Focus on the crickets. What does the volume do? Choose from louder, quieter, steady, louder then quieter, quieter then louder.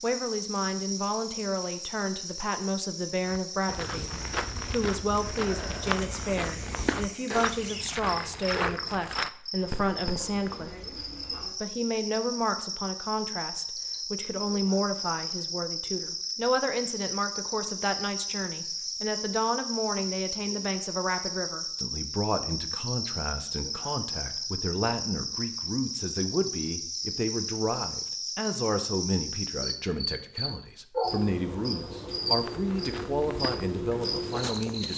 louder.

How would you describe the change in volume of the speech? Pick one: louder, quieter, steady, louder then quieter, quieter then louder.
steady.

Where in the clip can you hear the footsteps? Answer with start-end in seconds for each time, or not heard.
3.2-10.2, 32.4-34.9.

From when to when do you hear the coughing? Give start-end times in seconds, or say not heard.
not heard.